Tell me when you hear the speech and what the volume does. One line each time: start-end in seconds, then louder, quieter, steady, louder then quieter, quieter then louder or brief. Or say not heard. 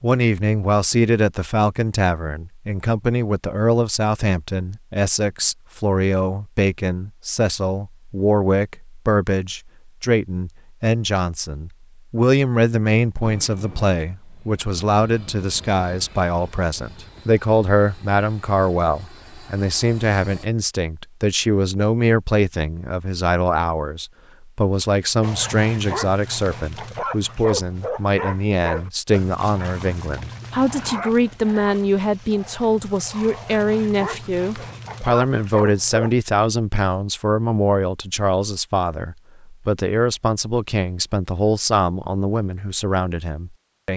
0.0-43.9 steady.